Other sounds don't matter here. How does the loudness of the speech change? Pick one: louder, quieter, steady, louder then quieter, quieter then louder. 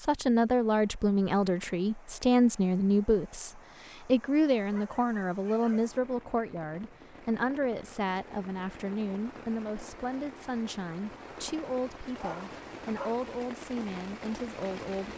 quieter.